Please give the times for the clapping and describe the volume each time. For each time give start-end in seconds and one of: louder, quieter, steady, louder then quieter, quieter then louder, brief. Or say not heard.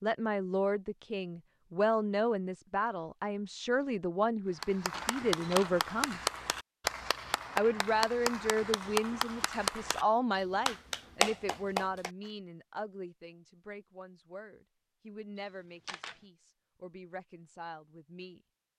4.5-12.1 steady.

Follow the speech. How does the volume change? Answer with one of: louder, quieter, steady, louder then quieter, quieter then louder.
quieter.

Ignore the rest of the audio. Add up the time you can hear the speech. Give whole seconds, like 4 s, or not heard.
17 s.